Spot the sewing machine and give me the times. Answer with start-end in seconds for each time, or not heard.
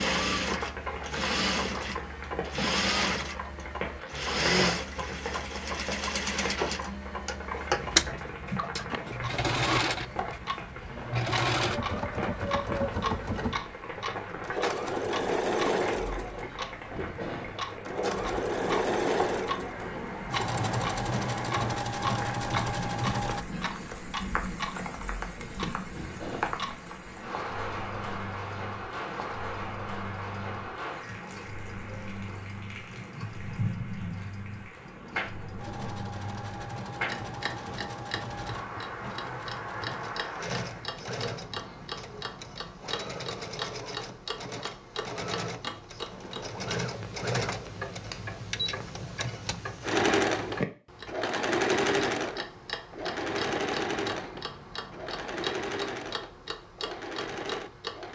0.0-23.4, 35.5-58.1.